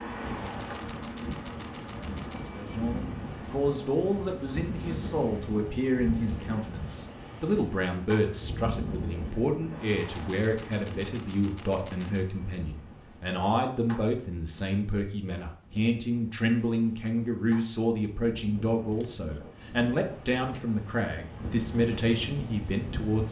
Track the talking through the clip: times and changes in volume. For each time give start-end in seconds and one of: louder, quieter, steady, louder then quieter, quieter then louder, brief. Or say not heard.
2.5-23.2 steady.